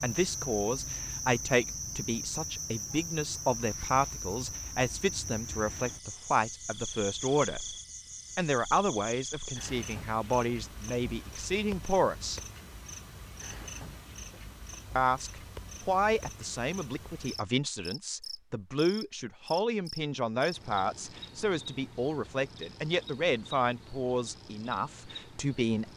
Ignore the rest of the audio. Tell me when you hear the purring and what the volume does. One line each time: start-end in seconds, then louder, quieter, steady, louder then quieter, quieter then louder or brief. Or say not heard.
not heard.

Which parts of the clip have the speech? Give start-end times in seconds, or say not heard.
0.0-7.6, 8.3-12.4, 14.9-25.9.